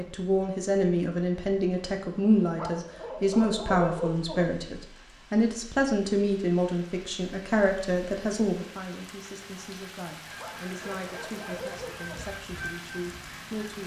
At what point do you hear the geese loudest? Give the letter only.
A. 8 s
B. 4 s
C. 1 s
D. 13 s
D.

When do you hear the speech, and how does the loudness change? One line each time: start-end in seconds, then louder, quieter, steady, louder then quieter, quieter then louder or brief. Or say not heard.
0.0-13.8 quieter.